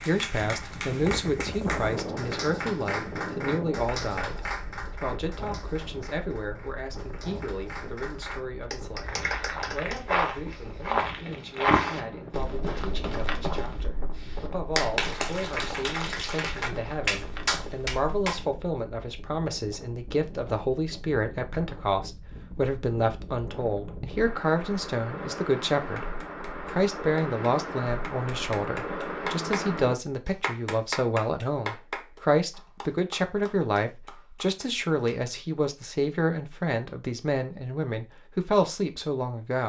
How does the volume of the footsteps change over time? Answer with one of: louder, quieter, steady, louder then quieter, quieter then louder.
quieter.